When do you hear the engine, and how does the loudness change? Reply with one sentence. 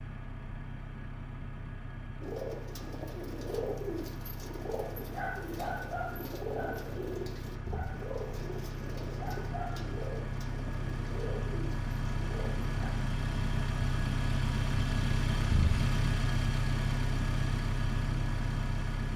The engine can be heard from 0.0 to 19.1 s, getting louder.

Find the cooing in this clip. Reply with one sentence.
The cooing can be heard from 2.2 to 12.9 s.